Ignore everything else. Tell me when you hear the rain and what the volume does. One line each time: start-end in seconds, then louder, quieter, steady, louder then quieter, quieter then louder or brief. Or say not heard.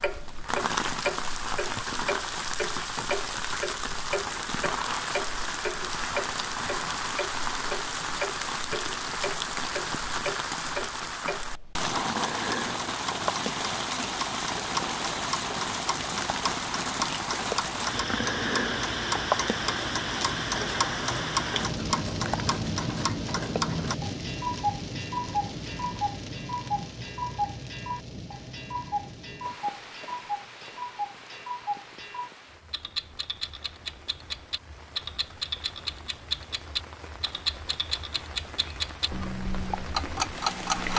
0.0-40.9 quieter.